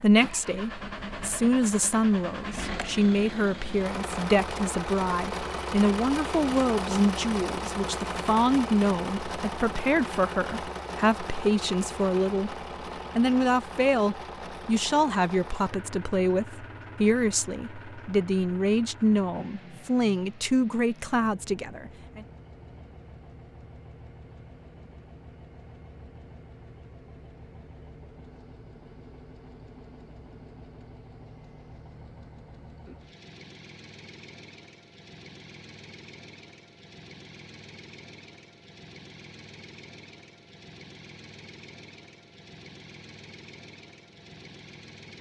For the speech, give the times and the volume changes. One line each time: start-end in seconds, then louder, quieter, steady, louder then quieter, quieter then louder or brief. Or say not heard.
0.0-12.6 steady
13.2-22.2 steady.